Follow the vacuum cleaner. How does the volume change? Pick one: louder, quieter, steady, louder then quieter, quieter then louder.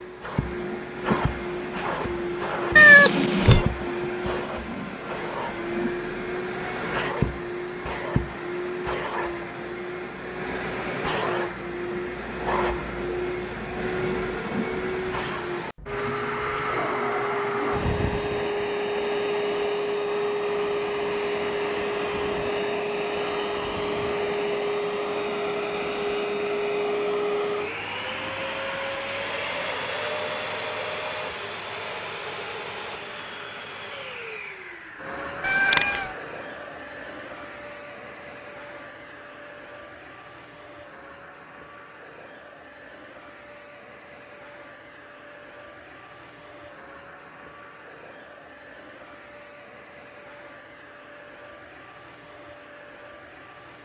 quieter.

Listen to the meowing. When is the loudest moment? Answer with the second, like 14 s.
3 s.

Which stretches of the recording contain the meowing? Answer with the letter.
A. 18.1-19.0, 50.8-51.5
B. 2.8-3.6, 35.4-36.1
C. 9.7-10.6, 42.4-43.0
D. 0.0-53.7
B.